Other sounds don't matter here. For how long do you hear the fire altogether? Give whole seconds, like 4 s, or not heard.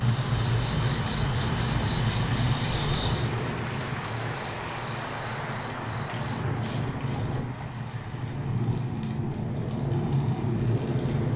11 s.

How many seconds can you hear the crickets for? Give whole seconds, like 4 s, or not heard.
7 s.